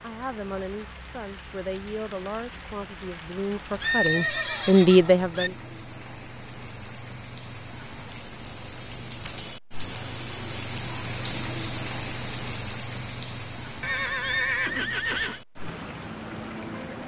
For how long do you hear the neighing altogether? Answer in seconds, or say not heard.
3 s.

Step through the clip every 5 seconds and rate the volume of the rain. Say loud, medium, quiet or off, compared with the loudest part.
quiet, medium, loud, medium.